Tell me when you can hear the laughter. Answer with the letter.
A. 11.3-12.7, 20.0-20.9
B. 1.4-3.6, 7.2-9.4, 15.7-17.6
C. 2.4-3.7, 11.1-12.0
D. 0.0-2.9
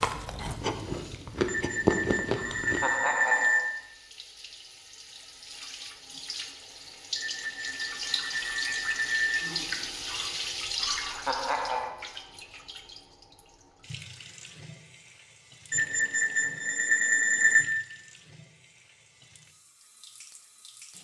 C.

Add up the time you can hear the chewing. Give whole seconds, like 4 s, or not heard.
3 s.